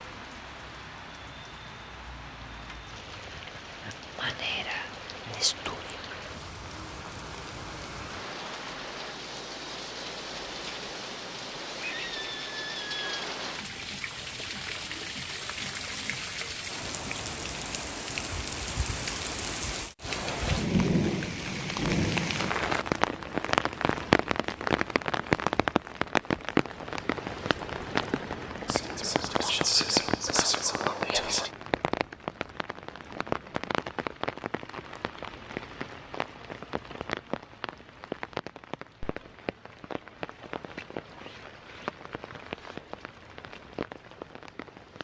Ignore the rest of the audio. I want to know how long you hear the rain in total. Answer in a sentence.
You can hear the rain for 45 seconds altogether.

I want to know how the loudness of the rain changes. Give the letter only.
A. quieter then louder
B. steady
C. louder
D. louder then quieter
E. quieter
D.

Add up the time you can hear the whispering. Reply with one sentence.
The whispering can be heard for 5 seconds in total.